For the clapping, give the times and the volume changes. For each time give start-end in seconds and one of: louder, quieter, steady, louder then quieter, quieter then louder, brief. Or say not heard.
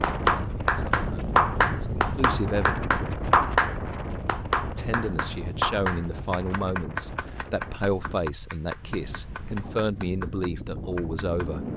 0.0-11.5 quieter.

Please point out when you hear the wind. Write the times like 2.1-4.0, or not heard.
0.0-11.7.